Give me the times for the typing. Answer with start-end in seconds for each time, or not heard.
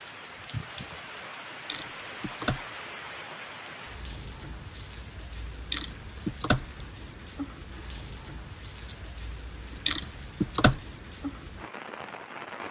0.7-2.6, 4.7-6.8, 8.8-10.8.